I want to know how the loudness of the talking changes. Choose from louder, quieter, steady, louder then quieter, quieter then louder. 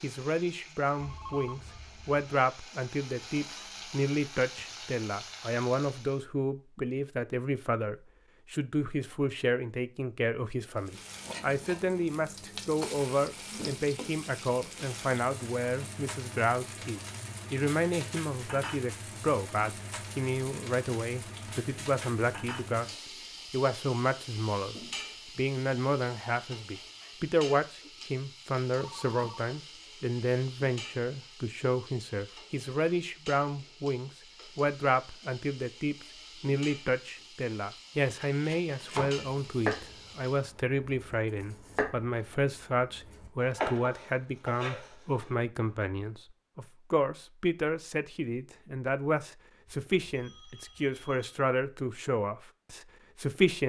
steady.